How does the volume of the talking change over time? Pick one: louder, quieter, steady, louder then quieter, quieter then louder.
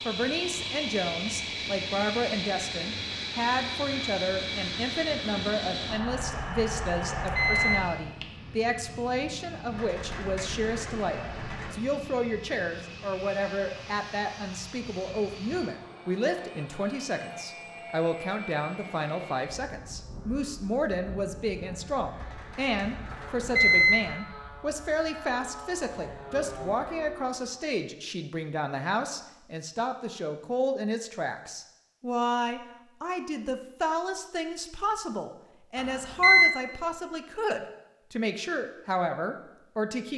steady.